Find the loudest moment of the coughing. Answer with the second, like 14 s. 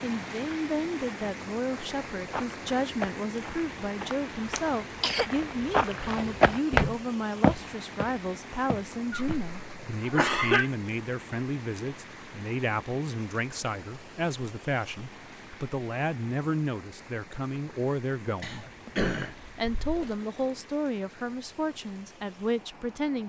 10 s.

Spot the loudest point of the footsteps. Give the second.
7 s.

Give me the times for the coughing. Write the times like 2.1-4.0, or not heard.
4.5-5.2, 9.1-10.7, 18.4-20.1.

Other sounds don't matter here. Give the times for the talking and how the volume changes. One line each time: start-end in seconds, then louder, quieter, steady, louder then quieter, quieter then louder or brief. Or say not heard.
0.0-23.2 steady.